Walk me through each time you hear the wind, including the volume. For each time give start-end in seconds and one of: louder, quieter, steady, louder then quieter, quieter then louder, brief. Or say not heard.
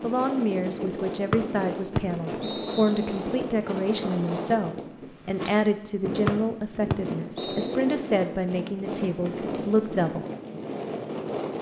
0.0-11.5 steady.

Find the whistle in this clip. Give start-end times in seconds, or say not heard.
1.3-3.1, 6.2-7.8.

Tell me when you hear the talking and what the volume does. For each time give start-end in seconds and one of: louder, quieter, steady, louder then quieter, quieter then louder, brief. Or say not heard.
0.0-10.2 steady.